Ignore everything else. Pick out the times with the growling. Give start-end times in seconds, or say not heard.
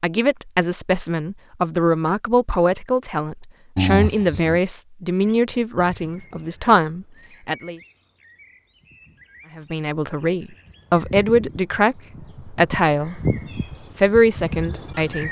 3.8-4.6.